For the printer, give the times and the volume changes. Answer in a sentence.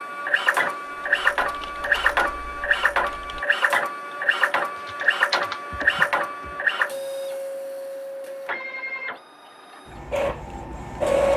The printer can be heard from 0.0 to 11.3 s, getting quieter.